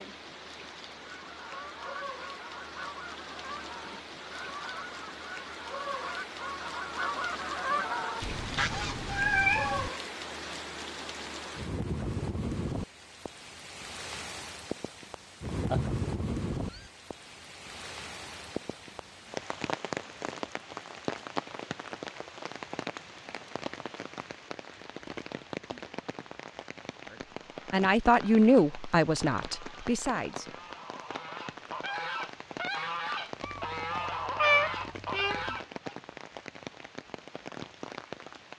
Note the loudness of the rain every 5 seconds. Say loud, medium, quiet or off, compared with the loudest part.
medium, loud, loud, loud, loud, medium, medium, medium.